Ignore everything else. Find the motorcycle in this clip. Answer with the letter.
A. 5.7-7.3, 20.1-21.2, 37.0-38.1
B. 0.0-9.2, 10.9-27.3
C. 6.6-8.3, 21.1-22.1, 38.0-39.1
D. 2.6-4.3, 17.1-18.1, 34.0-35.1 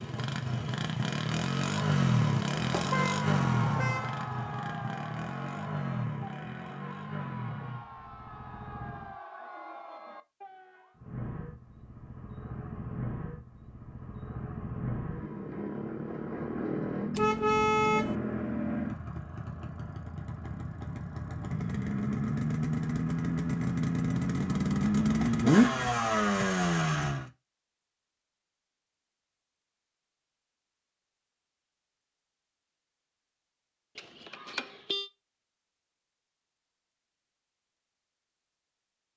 B.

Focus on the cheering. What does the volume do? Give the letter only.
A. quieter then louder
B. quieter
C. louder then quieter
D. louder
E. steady
B.